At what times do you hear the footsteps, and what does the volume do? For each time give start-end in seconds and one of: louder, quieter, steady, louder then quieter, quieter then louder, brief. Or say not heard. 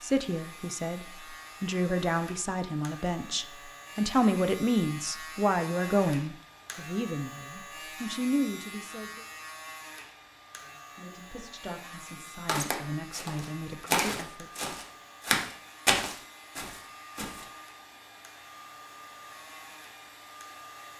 12.4-17.4 louder then quieter.